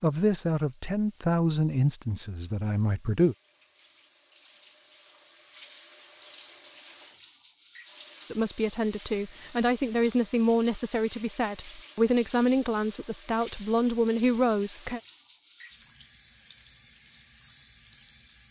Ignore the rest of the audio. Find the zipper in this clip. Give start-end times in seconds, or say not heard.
not heard.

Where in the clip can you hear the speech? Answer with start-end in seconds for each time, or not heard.
0.0-3.4, 8.3-15.0.